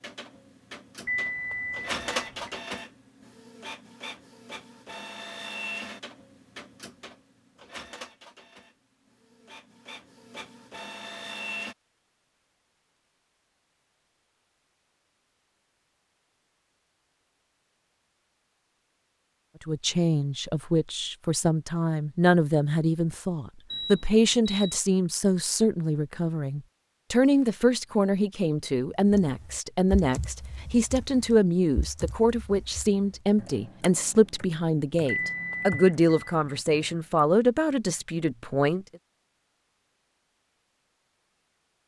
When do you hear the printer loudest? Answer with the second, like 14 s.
2 s.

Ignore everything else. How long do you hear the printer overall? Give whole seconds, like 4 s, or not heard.
12 s.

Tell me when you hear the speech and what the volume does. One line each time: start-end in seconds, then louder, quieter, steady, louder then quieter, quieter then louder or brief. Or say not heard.
19.6-38.9 steady.